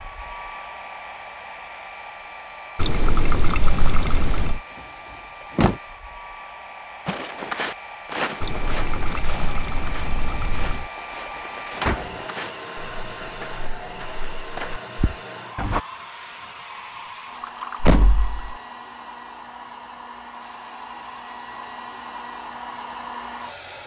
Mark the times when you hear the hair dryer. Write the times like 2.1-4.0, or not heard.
0.0-23.8.